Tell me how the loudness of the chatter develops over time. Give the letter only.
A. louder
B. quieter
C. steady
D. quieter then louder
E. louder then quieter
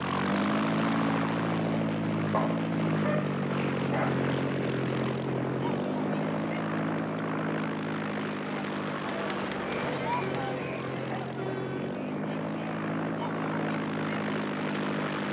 E.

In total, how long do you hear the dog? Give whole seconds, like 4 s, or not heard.
2 s.